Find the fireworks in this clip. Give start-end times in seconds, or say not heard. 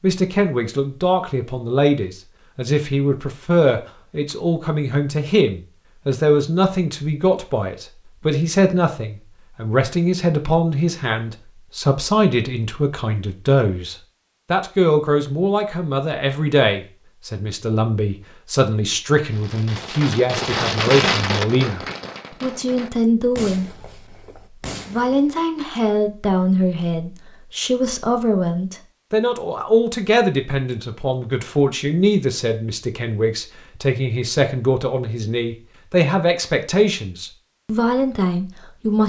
19.3-25.2.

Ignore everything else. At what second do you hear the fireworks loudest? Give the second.
21 s.